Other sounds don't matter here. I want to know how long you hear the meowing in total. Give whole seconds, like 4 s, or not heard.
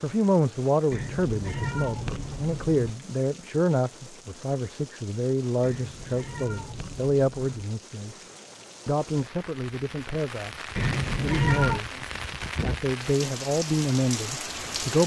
5 s.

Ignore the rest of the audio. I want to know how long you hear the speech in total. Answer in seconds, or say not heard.
14 s.